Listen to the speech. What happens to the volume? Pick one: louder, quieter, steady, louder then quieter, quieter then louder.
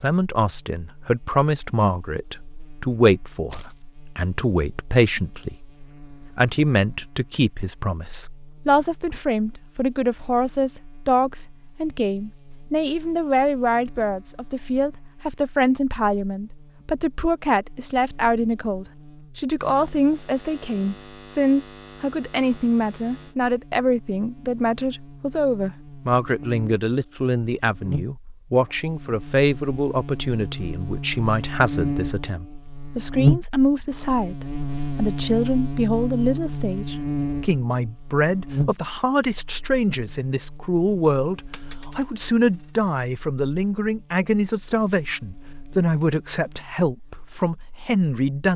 steady.